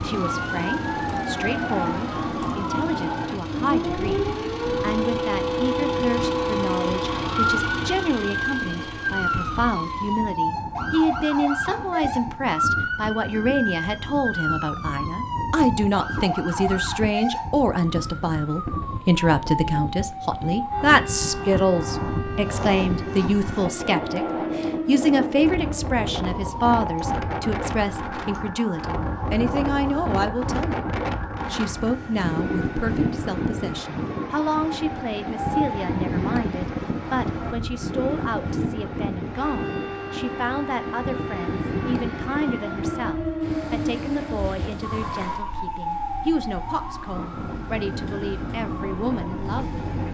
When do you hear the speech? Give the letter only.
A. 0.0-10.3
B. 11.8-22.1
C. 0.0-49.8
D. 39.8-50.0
C.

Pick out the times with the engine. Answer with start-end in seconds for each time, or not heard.
0.0-10.3.